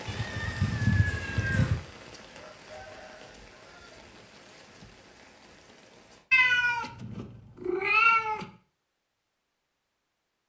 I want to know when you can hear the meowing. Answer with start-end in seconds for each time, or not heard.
0.1-1.8, 6.3-8.4.